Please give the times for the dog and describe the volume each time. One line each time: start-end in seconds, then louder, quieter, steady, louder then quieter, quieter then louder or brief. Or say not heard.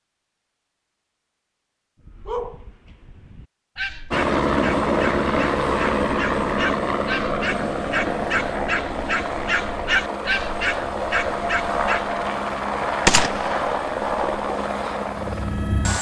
2.0-12.2 louder.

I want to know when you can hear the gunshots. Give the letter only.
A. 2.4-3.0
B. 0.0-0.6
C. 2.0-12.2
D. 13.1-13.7
D.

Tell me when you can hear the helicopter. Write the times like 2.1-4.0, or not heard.
4.1-15.9.